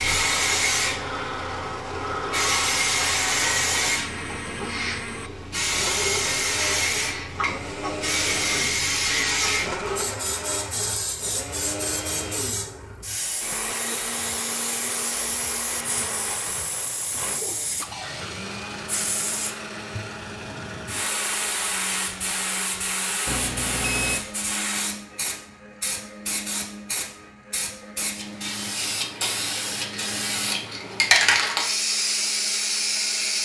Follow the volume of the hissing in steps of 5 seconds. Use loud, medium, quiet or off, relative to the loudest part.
loud, loud, medium, medium, medium, medium, loud.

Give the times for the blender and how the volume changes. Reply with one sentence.
The blender can be heard from 0.0 to 33.4 s, getting quieter.